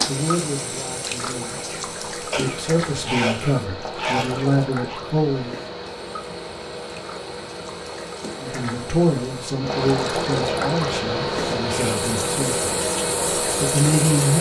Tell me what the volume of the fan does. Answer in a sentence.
The loudness of the fan goes up.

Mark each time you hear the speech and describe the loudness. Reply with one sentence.
The speech can be heard from 0.1 to 5.6 s, getting quieter then louder; from 8.3 to 12.8 s, getting quieter; and briefly from 13.4 to 14.3 s.